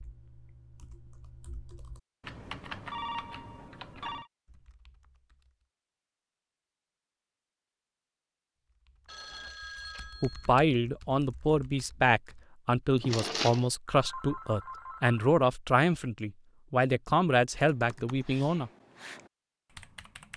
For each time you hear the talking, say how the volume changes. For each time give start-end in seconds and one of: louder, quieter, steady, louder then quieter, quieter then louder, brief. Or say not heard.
10.2-18.7 steady.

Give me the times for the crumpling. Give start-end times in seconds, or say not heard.
13.0-13.7.